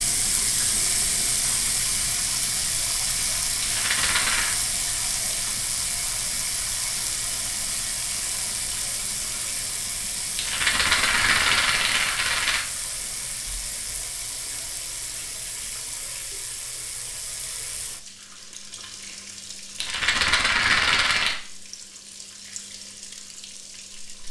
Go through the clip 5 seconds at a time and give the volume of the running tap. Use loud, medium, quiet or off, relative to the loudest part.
loud, loud, medium, medium, quiet.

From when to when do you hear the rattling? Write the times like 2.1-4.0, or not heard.
3.6-4.5, 10.3-12.7, 19.8-21.4.